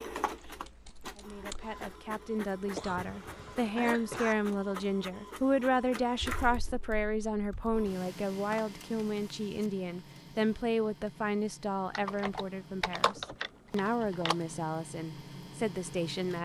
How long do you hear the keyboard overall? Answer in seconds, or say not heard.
6 s.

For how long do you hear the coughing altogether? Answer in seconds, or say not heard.
2 s.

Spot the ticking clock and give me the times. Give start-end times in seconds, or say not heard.
not heard.